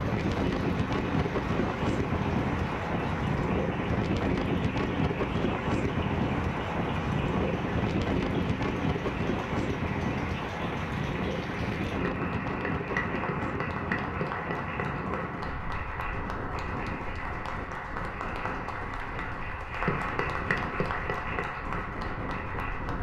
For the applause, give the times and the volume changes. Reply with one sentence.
You can hear the applause from 0.0 to 22.9 s, getting louder.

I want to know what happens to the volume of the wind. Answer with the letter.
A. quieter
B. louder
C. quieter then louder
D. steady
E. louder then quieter
A.